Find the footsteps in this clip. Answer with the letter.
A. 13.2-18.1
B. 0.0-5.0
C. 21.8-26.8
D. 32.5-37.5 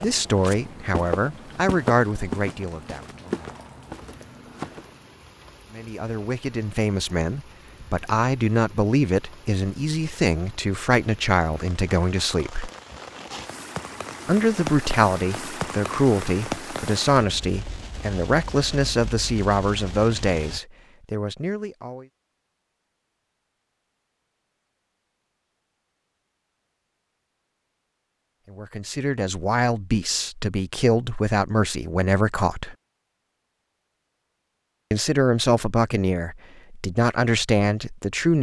B.